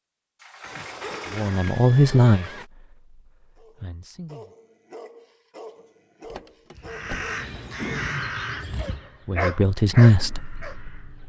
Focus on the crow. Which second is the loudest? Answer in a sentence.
The loudest moment of the crow is at 8 seconds.